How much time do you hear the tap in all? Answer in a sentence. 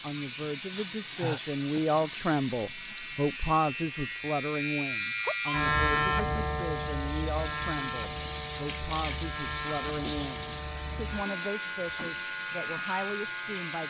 You can hear the tap for 14 seconds altogether.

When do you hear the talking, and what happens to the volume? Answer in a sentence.
The talking can be heard from 0.0 to 13.8 s, getting quieter.